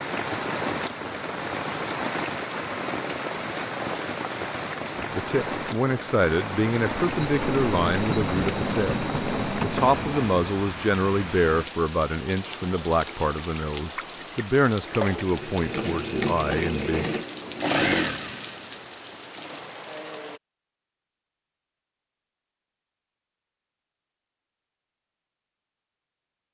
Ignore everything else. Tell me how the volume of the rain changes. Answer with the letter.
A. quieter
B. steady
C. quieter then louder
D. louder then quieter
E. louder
A.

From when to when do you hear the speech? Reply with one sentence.
You can hear the speech from 5.0 to 17.1 s.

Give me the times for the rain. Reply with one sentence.
The rain can be heard from 0.0 to 20.4 s.